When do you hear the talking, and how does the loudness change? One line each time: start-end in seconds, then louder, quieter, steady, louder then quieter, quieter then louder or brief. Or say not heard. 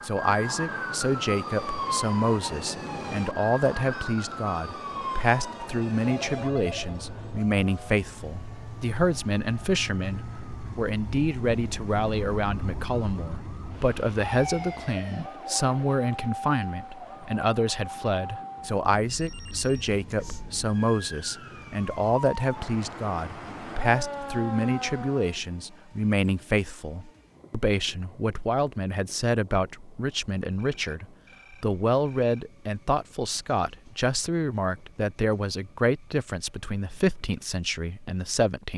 0.0-38.7 steady.